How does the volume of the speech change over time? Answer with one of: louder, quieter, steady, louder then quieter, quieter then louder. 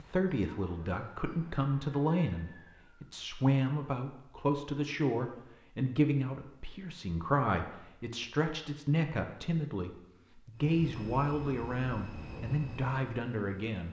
steady.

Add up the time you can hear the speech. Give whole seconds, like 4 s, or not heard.
14 s.